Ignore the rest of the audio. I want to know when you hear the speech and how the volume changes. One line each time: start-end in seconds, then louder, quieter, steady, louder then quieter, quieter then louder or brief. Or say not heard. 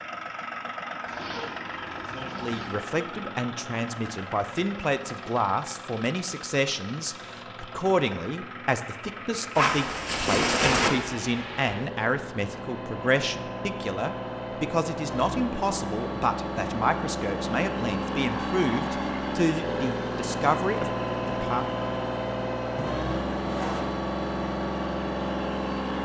2.1-21.6 steady.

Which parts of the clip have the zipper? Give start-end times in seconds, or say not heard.
1.1-2.9, 9.6-10.9, 22.8-24.0.